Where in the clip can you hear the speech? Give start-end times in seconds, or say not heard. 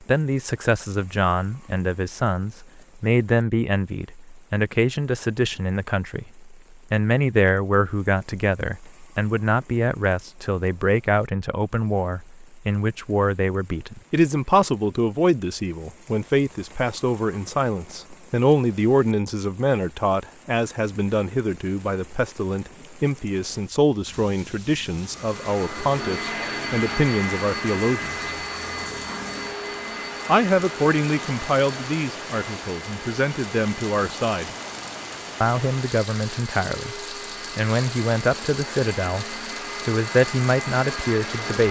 0.1-28.3, 30.2-34.5, 35.4-41.6.